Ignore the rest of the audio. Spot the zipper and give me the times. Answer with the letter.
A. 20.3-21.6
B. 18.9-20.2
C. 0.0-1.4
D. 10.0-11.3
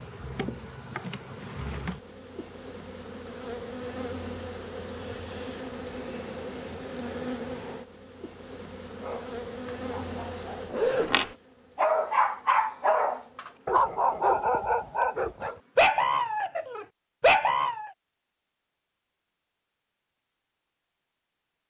D.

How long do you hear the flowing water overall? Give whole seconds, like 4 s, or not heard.
not heard.